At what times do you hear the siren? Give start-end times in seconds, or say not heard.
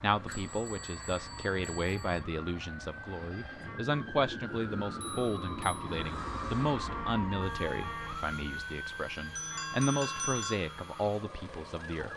0.0-12.1.